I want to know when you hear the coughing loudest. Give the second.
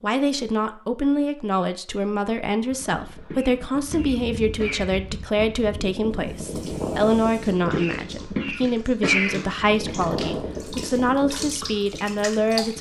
9 s.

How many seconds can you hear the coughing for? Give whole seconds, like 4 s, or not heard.
3 s.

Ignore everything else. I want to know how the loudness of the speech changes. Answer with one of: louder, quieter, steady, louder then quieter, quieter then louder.
steady.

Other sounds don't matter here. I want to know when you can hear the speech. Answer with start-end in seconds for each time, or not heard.
0.0-12.7.